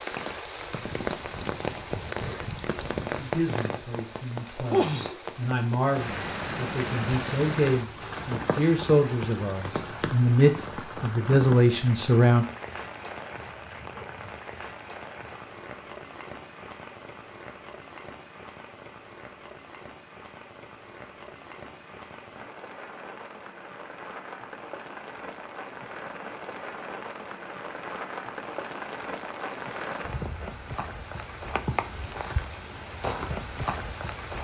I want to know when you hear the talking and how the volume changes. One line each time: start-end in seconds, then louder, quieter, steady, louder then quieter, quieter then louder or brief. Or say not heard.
3.1-12.4 louder.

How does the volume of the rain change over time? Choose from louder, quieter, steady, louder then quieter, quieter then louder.
quieter then louder.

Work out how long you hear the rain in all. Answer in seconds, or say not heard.
34 s.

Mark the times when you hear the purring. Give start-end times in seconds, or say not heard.
not heard.